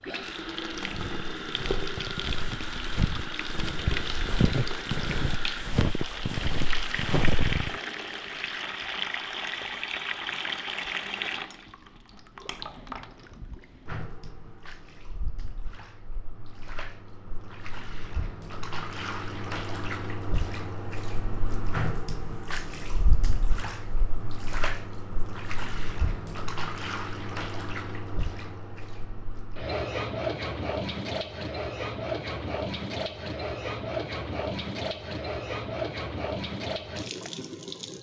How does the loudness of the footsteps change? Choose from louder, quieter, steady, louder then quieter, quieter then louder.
louder.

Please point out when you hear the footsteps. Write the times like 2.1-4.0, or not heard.
0.8-7.8.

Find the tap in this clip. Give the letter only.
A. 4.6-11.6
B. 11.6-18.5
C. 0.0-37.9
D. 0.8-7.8
C.